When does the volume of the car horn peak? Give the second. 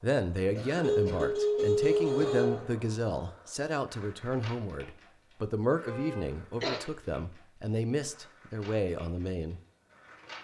2 s.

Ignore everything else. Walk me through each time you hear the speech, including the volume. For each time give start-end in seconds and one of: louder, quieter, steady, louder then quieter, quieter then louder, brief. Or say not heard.
0.0-9.6 steady.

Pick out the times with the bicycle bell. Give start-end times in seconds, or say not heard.
not heard.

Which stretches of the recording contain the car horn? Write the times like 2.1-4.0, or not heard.
0.8-2.6, 5.8-6.3.